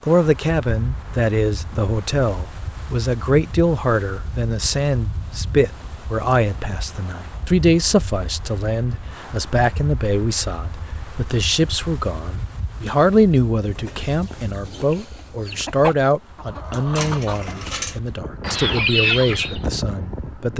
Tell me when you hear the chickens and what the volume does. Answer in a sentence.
You can hear the chickens from 13.7 to 19.6 s, getting louder.